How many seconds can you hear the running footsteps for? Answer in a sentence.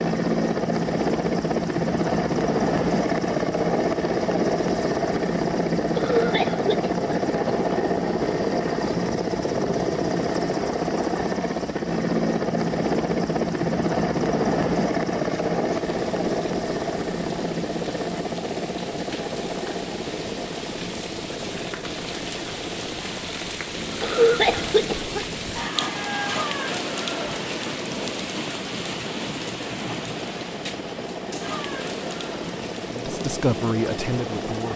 You can't hear the running footsteps here.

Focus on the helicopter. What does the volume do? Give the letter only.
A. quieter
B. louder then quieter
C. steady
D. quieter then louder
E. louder
A.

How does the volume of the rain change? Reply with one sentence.
The loudness of the rain goes up, then down.